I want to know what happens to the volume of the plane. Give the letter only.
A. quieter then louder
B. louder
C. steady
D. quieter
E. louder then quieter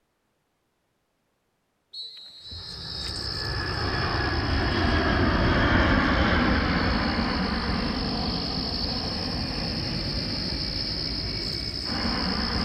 E.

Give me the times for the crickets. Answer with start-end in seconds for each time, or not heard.
2.4-12.6.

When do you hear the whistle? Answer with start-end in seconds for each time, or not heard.
1.9-3.0.